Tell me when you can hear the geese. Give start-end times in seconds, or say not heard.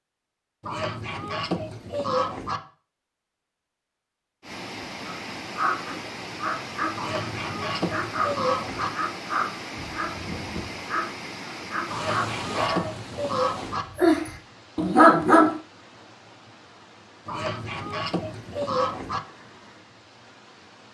0.6-2.6, 7.0-8.9, 11.8-13.8, 17.2-19.2.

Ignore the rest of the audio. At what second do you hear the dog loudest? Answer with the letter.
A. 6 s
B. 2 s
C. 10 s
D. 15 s
D.